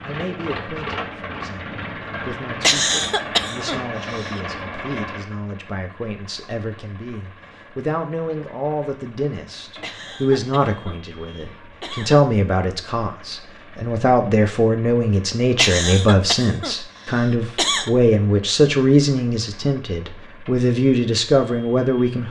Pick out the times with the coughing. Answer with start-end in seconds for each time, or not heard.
2.6-4.4, 9.8-12.2, 15.6-17.9.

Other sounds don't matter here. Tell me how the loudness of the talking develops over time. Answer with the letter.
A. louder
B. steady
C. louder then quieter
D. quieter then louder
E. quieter
A.